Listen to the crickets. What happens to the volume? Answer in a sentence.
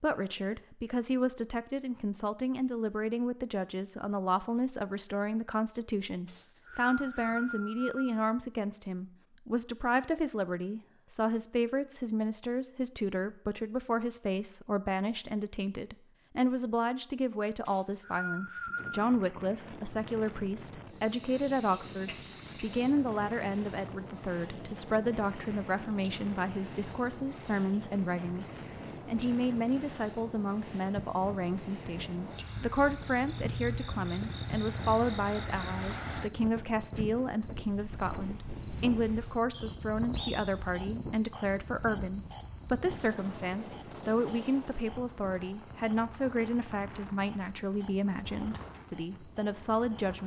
The volume of the crickets goes up, then down.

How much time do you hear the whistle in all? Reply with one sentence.
The whistle can be heard for 4 seconds in total.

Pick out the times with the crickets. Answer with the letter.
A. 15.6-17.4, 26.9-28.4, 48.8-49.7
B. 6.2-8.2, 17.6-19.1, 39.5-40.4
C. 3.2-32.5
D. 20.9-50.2
D.